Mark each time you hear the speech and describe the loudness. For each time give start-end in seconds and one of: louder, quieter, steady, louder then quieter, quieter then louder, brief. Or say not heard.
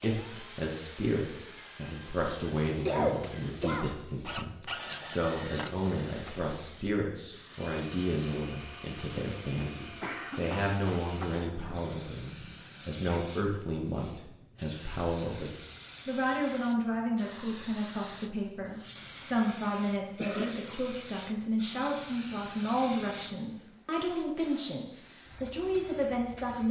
0.0-26.6 steady.